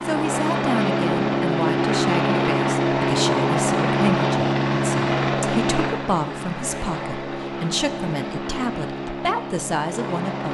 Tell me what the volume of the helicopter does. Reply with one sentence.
The loudness of the helicopter goes down.